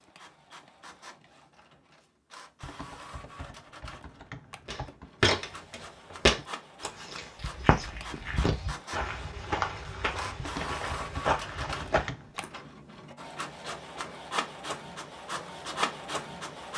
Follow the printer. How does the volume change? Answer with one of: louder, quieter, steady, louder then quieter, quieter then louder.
louder.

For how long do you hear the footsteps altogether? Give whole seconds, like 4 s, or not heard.
8 s.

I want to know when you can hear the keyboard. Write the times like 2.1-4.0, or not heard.
2.6-5.2, 10.3-12.3.